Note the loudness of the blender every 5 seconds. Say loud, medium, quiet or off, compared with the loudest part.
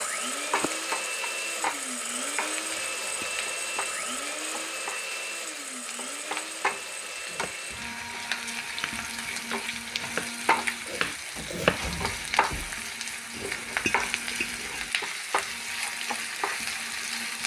loud, medium, quiet, quiet.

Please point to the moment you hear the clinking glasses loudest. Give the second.
14 s.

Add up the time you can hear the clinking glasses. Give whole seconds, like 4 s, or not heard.
3 s.